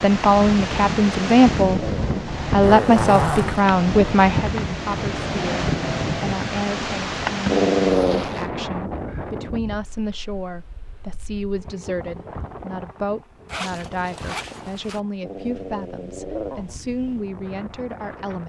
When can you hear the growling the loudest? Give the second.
8 s.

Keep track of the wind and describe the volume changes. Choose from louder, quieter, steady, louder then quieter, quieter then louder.
quieter.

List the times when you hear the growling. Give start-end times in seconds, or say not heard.
0.7-2.6, 7.5-8.2, 15.2-16.8.